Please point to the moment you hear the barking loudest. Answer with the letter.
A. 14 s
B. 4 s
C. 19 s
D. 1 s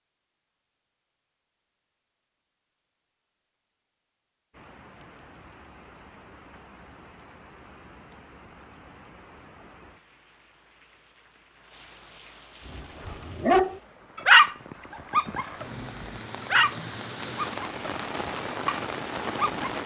A.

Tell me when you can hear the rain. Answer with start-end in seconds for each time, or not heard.
4.5-19.8.